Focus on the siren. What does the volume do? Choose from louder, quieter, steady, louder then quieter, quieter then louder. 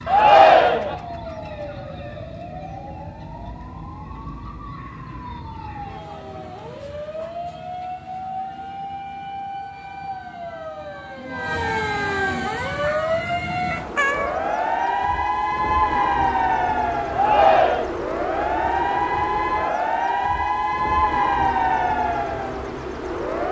louder.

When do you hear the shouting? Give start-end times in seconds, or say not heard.
0.1-0.9, 17.1-17.9.